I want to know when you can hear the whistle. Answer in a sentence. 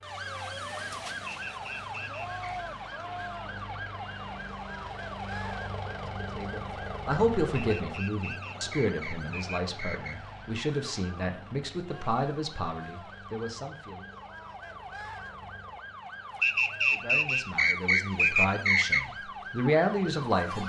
The whistle can be heard from 1.4 to 2.6 s, from 7.5 to 10.2 s and from 16.4 to 19.1 s.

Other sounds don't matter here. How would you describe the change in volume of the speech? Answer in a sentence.
The loudness of the speech goes down, then up.